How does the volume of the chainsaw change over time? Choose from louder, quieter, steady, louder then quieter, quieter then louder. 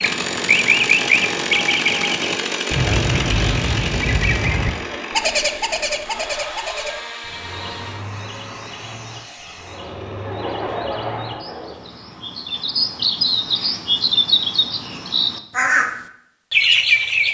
quieter.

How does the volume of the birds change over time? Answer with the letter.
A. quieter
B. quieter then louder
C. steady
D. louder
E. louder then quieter
B.